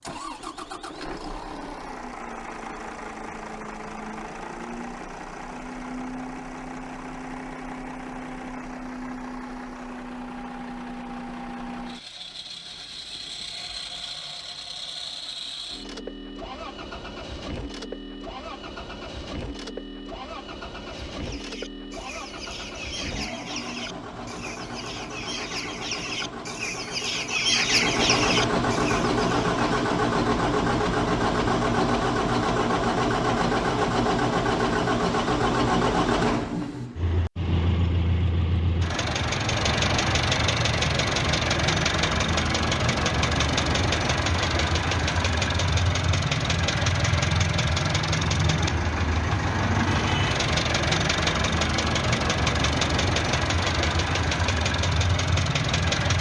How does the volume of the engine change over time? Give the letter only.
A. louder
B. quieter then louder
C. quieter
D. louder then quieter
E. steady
A.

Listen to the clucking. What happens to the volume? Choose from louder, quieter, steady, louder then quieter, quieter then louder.
louder.